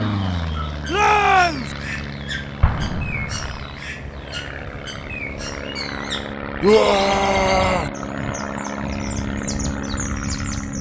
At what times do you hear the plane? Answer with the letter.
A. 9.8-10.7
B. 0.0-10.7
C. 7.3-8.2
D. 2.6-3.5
B.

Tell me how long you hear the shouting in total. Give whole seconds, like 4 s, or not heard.
2 s.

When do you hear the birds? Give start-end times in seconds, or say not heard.
0.0-10.7.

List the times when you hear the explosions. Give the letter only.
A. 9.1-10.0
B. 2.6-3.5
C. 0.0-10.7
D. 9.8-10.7
B.